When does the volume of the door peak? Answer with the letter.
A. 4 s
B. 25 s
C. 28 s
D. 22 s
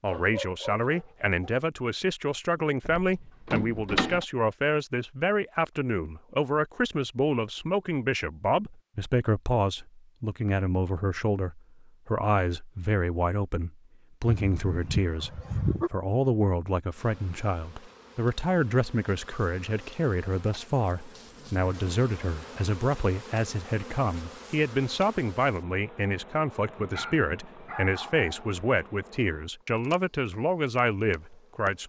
A.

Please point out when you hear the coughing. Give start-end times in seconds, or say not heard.
not heard.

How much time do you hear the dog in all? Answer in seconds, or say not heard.
5 s.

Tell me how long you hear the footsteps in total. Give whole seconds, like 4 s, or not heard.
not heard.